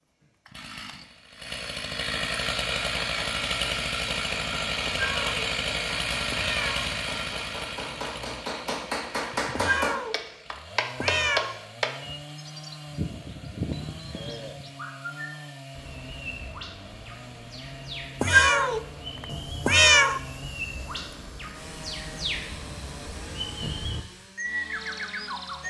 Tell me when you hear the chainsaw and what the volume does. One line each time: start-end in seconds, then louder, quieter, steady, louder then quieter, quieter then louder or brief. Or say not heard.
0.0-25.6 quieter.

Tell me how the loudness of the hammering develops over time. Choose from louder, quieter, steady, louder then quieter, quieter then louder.
louder.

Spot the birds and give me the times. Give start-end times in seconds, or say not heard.
12.1-25.6.